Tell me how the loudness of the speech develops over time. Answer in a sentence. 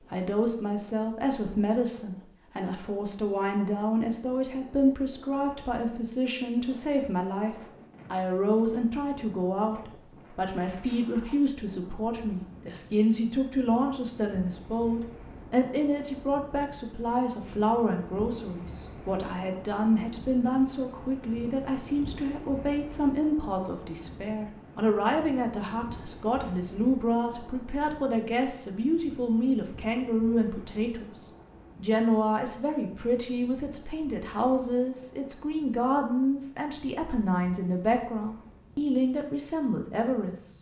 The loudness of the speech stays about the same.